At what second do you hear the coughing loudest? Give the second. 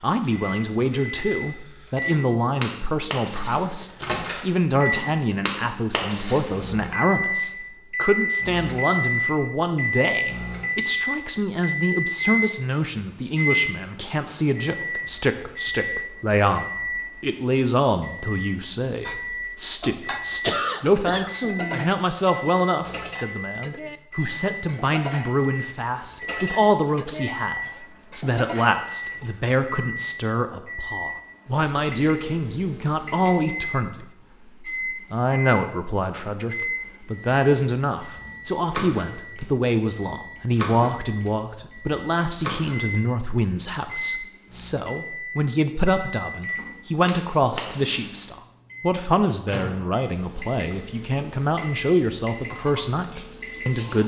21 s.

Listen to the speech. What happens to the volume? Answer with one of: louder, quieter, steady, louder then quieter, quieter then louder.
steady.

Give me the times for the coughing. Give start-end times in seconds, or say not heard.
20.4-21.9.